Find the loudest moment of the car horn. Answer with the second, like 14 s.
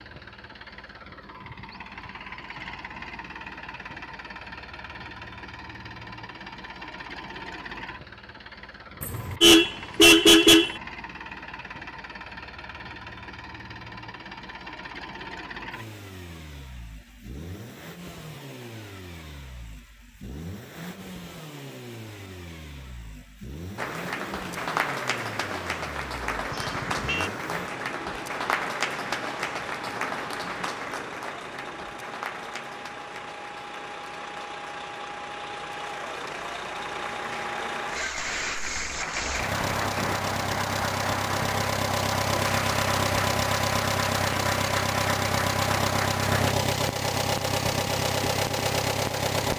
10 s.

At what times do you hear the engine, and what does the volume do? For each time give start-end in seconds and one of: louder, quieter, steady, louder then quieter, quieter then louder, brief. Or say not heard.
0.0-49.5 louder.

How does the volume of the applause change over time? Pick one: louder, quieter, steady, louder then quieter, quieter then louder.
quieter then louder.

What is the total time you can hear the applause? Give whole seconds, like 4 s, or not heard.
23 s.